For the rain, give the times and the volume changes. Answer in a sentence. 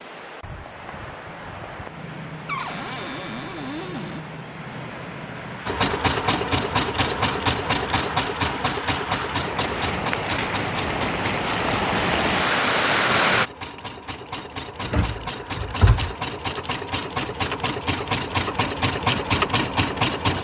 You can hear the rain from 0.0 to 13.5 s, getting louder.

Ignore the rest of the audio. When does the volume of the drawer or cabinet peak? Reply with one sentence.
The volume of the drawer or cabinet peaks at 16 seconds.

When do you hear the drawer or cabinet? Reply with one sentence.
The drawer or cabinet can be heard from 2.5 to 4.2 s and from 14.8 to 16.1 s.